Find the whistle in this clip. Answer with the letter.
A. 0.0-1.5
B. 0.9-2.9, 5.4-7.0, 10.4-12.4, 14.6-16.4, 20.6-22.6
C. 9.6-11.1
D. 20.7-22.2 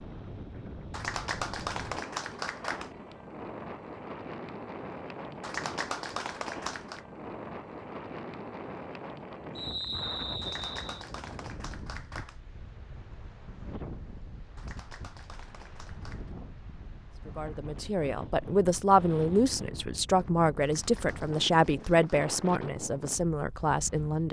C.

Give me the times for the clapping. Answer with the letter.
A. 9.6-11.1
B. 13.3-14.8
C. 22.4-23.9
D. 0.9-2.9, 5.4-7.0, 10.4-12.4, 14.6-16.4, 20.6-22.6
D.